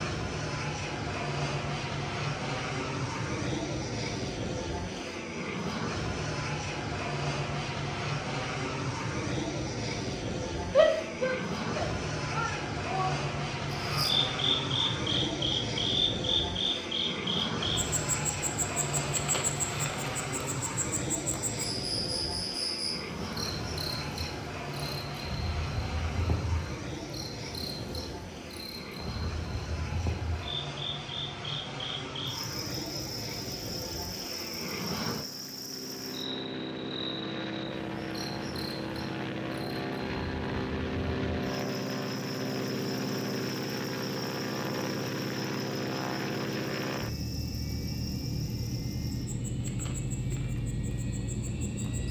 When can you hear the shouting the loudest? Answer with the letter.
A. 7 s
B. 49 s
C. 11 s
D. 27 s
C.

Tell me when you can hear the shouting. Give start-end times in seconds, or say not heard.
10.7-13.2.